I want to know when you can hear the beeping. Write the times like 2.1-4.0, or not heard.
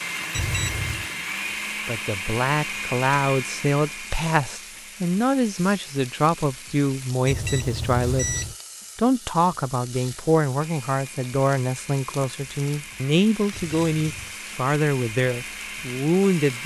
0.3-1.1, 7.2-8.6, 13.5-14.3.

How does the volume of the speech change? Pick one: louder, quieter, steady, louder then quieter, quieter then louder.
steady.